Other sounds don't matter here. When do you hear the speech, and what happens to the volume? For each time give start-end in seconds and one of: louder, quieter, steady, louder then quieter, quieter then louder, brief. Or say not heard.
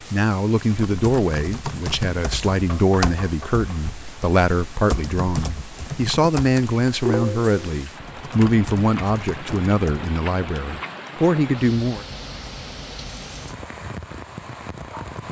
0.1-12.1 steady.